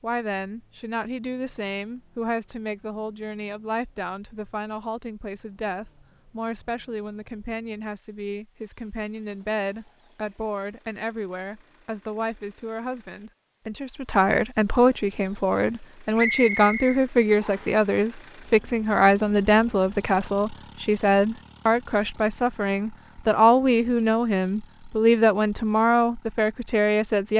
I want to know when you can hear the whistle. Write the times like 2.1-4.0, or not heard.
16.1-17.8.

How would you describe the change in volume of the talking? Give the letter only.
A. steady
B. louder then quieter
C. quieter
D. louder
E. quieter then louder
D.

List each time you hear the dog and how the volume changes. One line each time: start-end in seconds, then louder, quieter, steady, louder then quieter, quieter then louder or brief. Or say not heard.
not heard.